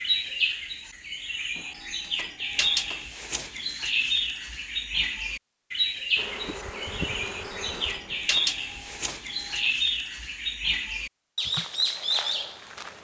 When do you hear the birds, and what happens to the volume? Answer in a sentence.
The birds can be heard from 0.0 to 12.9 s, at a steady volume.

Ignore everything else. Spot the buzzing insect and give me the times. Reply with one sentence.
The buzzing insect can be heard from 6.2 to 8.3 s and from 11.4 to 12.9 s.